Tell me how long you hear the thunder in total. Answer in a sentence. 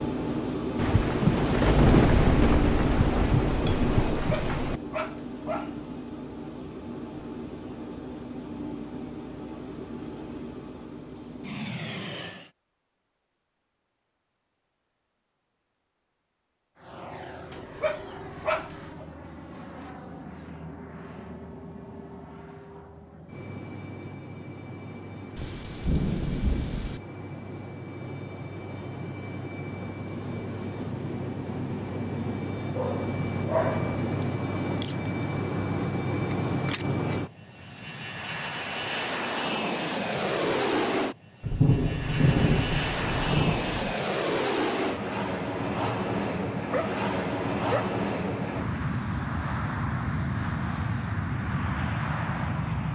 The thunder can be heard for 8 seconds in total.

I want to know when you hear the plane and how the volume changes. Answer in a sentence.
The plane can be heard from 0.0 to 12.5 s, getting quieter; and from 16.8 to 52.8 s, getting louder.